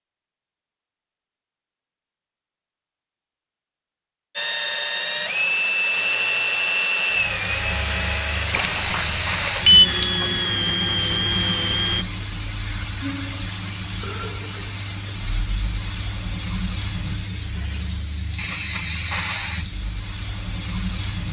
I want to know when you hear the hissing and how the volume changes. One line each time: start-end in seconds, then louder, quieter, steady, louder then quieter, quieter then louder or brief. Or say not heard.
7.1-21.2 steady.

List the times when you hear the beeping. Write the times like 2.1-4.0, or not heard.
8.6-9.8.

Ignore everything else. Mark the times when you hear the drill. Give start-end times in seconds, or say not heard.
4.3-12.1.